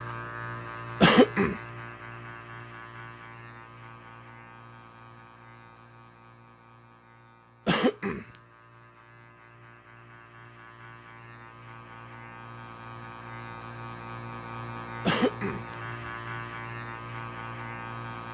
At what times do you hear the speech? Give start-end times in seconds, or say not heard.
not heard.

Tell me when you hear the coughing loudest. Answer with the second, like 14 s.
1 s.